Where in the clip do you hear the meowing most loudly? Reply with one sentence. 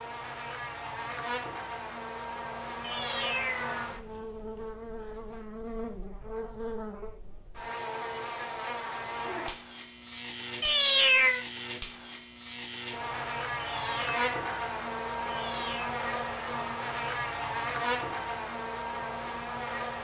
The volume of the meowing peaks at 11 seconds.